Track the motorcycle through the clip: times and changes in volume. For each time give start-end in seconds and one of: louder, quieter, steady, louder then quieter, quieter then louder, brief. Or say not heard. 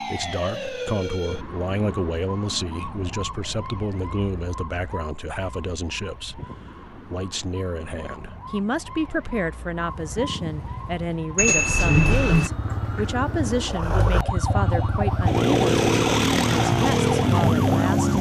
9.7-18.1 louder.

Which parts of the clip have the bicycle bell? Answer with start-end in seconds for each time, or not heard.
11.3-12.5.